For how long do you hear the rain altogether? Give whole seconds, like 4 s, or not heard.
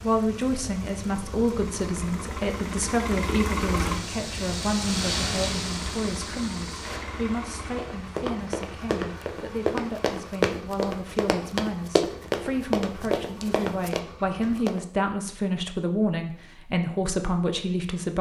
10 s.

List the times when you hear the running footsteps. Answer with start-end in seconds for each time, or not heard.
7.8-14.8.